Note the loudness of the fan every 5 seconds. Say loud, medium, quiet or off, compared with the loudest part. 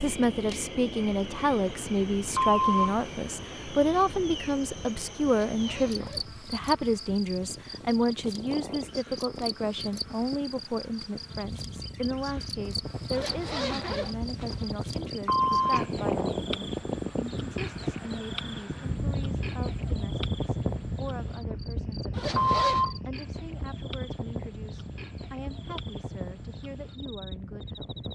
quiet, medium, medium, loud, loud, medium.